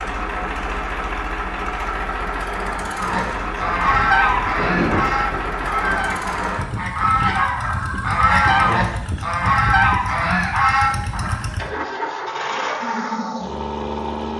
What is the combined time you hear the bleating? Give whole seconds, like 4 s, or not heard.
not heard.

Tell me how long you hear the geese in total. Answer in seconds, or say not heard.
9 s.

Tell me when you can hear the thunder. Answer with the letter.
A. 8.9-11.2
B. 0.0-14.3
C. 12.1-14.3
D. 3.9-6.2
D.